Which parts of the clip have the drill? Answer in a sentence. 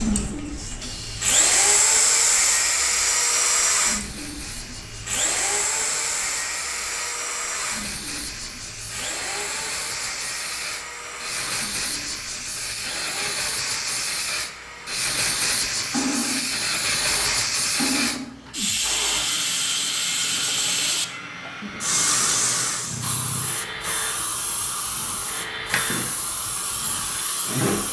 The drill can be heard from 0.0 to 27.8 s.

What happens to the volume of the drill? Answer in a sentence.
The volume of the drill goes down.